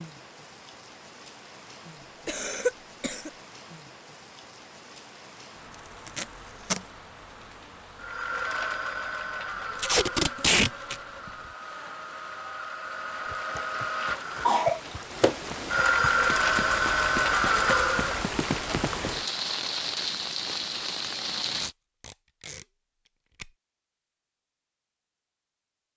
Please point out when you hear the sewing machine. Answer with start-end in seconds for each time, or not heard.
8.0-18.3.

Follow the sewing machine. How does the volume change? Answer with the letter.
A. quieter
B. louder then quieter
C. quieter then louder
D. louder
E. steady
C.